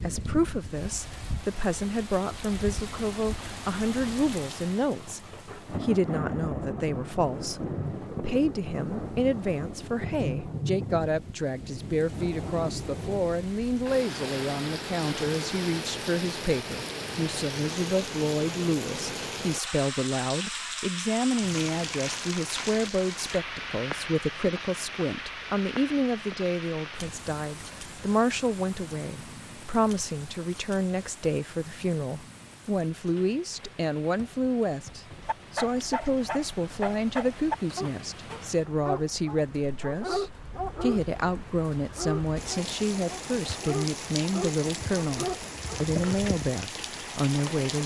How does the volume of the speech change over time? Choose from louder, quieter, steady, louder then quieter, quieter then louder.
steady.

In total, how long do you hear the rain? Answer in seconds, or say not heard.
48 s.